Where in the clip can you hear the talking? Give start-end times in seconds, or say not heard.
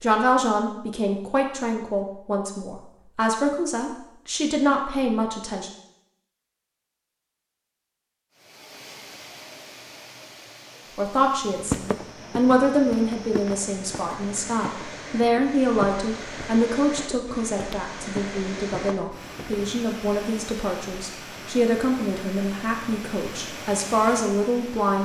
0.0-5.7, 10.9-24.9.